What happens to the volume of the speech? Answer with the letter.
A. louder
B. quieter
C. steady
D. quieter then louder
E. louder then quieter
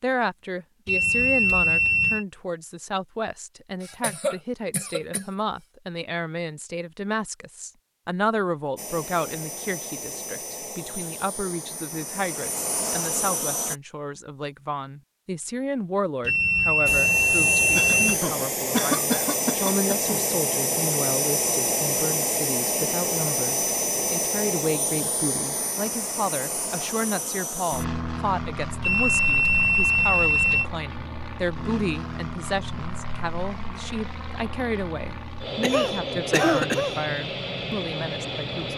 C.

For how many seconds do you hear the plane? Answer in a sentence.
You can hear the plane for 27 seconds altogether.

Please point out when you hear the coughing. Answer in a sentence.
The coughing can be heard from 3.8 to 5.2 s, from 17.8 to 20.2 s and from 35.6 to 37.0 s.